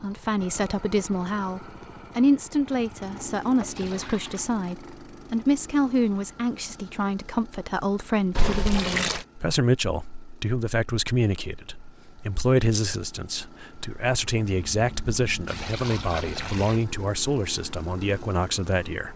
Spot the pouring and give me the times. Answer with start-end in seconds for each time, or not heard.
3.6-4.5, 8.3-9.2, 14.4-16.9.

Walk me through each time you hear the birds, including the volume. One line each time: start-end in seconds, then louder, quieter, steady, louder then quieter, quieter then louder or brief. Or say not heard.
not heard.